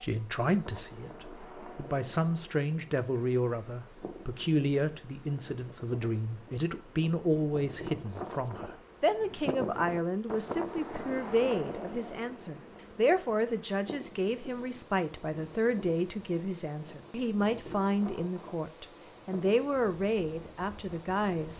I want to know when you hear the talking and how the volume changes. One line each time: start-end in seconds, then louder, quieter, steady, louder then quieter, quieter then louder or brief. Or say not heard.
0.0-21.5 steady.